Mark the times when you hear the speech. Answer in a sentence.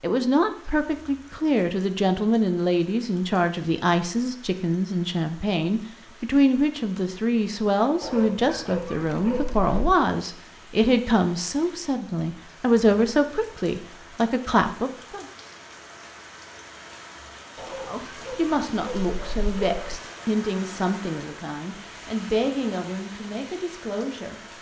You can hear the speech from 0.0 to 15.2 s and from 17.8 to 24.4 s.